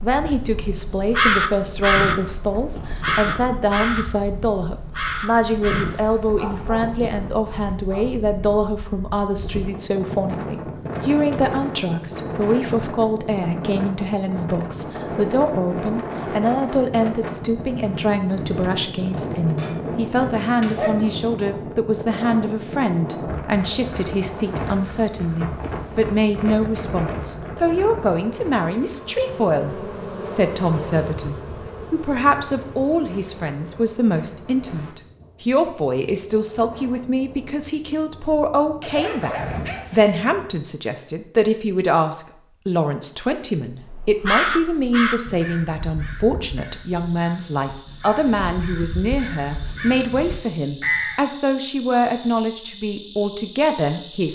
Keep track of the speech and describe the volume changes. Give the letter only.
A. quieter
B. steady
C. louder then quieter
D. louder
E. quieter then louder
B.